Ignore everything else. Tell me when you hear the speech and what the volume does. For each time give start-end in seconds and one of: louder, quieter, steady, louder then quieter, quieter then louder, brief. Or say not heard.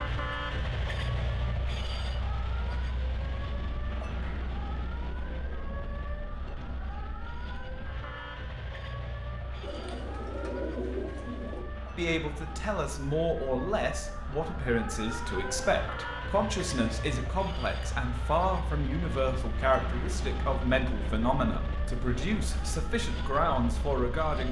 11.9-24.4 steady.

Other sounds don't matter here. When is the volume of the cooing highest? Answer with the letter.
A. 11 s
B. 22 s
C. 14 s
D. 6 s
A.